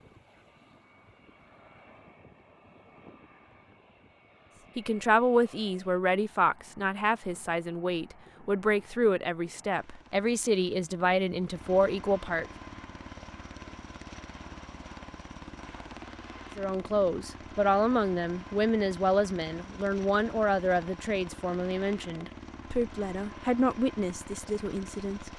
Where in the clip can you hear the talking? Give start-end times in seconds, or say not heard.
4.8-12.4, 16.6-25.3.